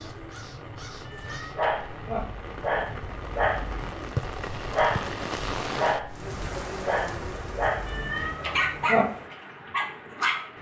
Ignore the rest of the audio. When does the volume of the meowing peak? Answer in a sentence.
The volume of the meowing peaks at 9 seconds.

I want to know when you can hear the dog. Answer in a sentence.
The dog can be heard from 1.4 to 10.5 s.